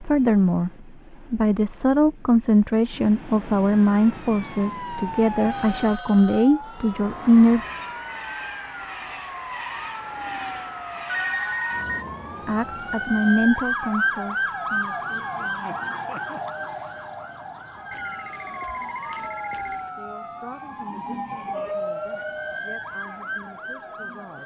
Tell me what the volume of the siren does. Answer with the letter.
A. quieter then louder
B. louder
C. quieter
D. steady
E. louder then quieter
E.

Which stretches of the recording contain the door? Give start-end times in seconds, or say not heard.
not heard.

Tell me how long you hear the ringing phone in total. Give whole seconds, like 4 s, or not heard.
4 s.